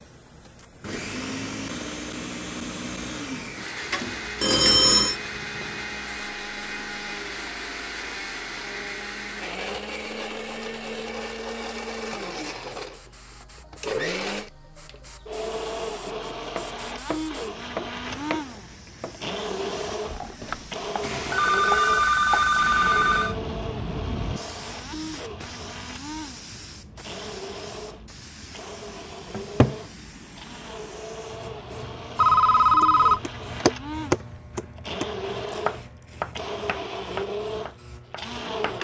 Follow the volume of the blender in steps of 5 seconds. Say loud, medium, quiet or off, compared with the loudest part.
loud, loud, loud, loud, loud, medium, medium, loud.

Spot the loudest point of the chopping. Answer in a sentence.
The volume of the chopping peaks at 34 seconds.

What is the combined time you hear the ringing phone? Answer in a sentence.
You can hear the ringing phone for 5 seconds altogether.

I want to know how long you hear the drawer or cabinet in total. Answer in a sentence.
You can hear the drawer or cabinet for 2 seconds altogether.